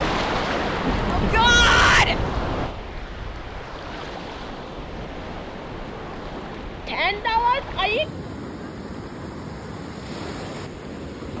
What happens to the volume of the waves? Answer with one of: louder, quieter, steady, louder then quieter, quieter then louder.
quieter.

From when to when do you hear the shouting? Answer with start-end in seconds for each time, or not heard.
1.1-2.1, 6.8-8.1.